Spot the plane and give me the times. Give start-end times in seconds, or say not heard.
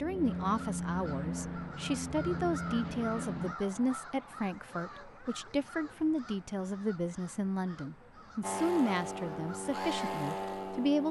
0.0-3.5, 8.4-11.0.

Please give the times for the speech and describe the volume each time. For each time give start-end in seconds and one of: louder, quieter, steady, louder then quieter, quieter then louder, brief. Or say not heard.
0.0-11.0 steady.